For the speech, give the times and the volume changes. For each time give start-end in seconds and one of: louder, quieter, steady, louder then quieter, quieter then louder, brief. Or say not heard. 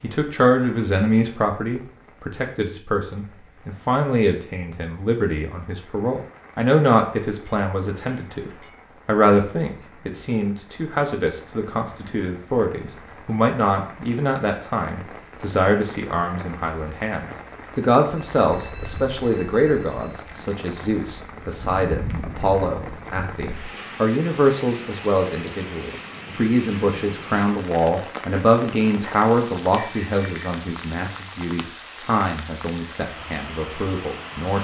0.0-34.6 steady.